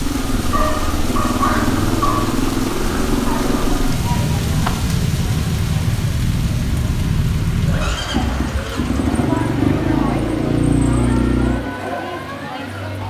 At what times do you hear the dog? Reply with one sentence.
The dog can be heard from 0.5 to 2.4 s.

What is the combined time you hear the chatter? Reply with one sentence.
The chatter can be heard for 10 seconds in total.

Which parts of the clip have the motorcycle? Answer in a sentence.
You can hear the motorcycle from 0.0 to 11.6 s.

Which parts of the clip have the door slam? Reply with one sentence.
The door slam can be heard from 4.5 to 4.9 s.